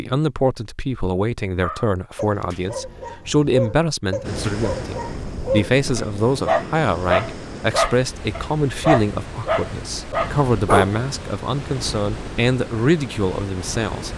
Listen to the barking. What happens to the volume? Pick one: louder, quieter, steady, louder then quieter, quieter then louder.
louder.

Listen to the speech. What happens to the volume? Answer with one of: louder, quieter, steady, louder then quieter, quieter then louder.
steady.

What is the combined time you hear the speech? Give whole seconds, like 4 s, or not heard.
14 s.